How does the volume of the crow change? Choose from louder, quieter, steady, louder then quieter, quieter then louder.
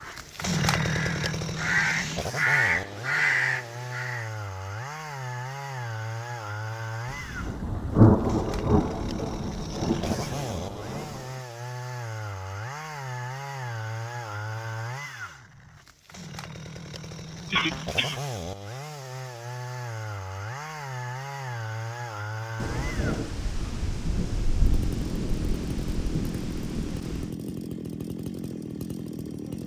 louder.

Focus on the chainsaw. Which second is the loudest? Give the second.
1 s.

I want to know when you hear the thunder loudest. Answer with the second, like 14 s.
8 s.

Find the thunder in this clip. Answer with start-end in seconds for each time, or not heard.
7.1-11.2, 22.6-27.3.